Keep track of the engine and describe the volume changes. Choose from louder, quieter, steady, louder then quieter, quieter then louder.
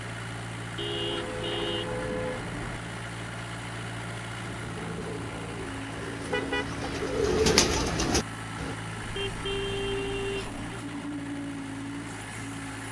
steady.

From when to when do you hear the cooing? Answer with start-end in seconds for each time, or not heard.
4.6-8.8.